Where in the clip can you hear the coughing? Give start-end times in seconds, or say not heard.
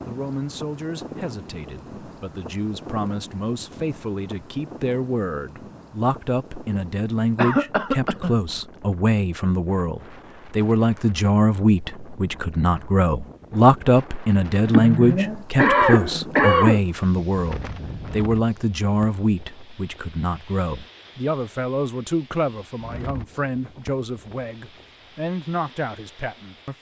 7.3-8.3, 14.7-16.8.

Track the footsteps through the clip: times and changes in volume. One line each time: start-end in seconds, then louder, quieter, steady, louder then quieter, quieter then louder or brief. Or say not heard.
not heard.